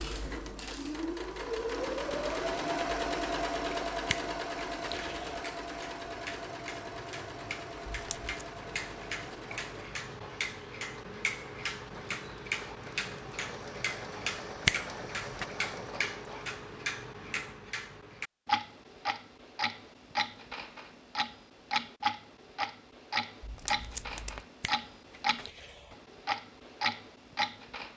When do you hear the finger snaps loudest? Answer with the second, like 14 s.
15 s.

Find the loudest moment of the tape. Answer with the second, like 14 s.
24 s.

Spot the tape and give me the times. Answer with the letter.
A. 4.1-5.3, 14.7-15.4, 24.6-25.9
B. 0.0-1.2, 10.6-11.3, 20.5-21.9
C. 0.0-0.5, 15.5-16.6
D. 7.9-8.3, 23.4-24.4
D.